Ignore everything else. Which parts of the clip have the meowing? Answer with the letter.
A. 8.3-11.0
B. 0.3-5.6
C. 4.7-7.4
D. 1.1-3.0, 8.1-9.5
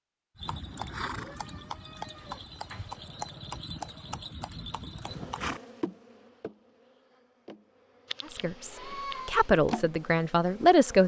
D.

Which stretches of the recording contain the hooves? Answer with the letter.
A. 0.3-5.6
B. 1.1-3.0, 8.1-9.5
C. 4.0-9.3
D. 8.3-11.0
A.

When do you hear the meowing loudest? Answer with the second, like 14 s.
9 s.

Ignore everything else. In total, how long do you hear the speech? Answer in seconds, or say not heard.
3 s.